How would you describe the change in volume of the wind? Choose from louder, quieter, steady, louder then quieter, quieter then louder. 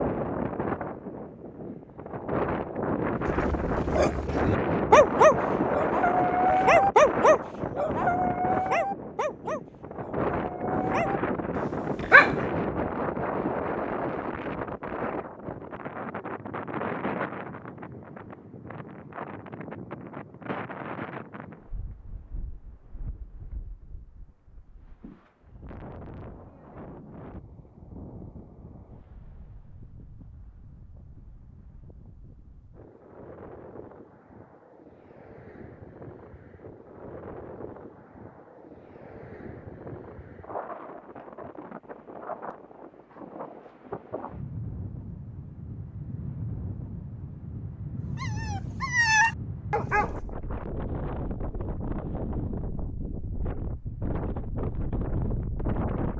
quieter then louder.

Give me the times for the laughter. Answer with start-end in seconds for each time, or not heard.
not heard.